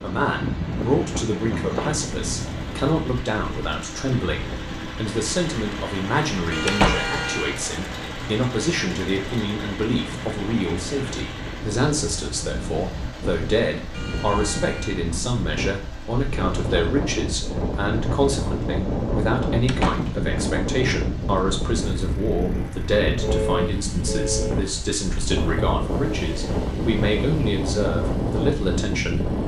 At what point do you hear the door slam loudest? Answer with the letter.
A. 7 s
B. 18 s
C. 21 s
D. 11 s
A.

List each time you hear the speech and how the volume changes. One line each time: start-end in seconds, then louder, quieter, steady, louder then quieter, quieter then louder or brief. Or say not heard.
0.0-29.2 steady.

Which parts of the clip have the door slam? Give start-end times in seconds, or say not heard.
6.7-7.2, 19.6-20.1.